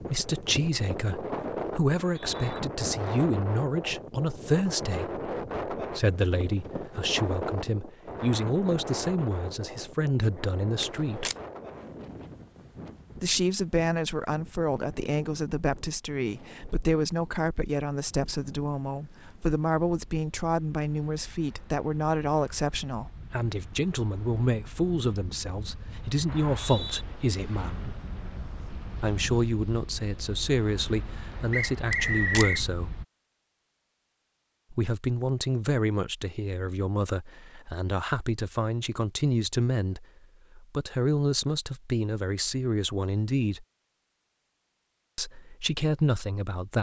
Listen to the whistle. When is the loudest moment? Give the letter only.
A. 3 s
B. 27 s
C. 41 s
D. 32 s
D.